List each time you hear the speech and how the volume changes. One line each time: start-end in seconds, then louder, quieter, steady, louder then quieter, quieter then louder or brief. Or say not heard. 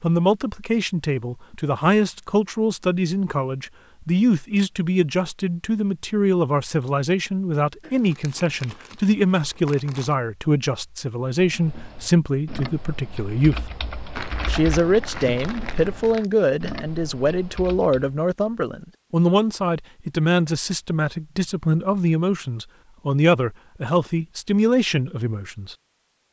0.0-13.7 steady
14.4-25.8 steady.